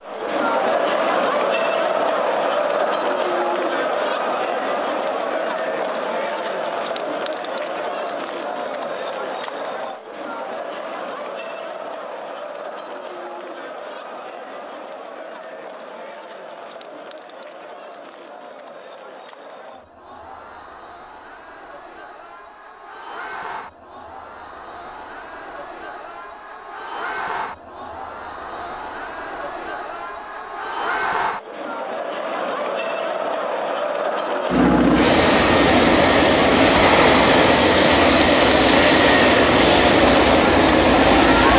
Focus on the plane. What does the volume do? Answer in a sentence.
The volume of the plane stays about the same.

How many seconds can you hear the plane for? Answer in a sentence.
The plane can be heard for 7 seconds in total.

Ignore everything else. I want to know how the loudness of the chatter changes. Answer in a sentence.
The volume of the chatter goes down, then up.